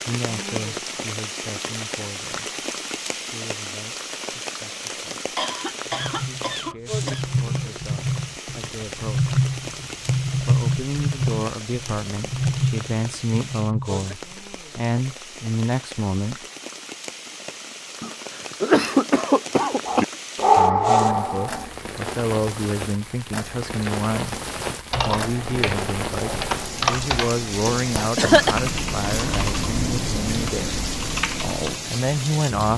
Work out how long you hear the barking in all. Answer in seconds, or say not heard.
2 s.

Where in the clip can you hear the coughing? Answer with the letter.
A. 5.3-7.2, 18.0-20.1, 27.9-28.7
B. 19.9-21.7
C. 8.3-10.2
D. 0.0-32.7
A.